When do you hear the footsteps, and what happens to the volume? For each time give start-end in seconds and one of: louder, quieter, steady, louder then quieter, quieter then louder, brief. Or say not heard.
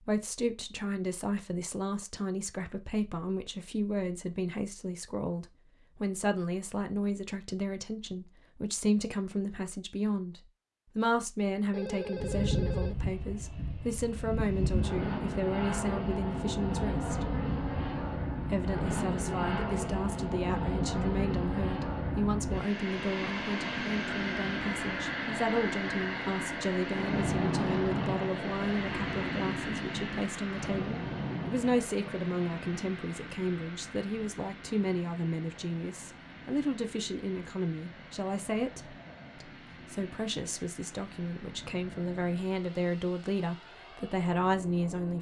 not heard.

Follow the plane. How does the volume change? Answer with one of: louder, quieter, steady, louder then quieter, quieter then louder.
quieter.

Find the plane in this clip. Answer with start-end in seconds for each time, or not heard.
12.2-45.1.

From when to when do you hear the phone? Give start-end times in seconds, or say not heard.
11.7-13.1.